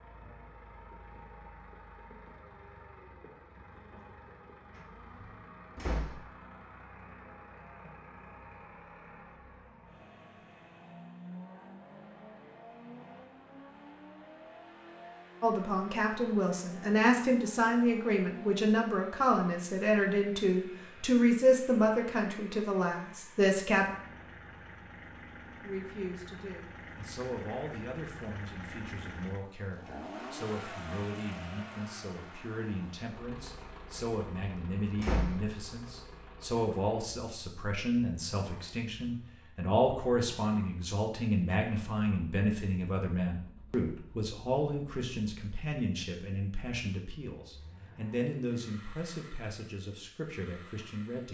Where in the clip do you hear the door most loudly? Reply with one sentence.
The loudest moment of the door is at 35 seconds.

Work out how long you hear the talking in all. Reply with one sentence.
The talking can be heard for 34 seconds in total.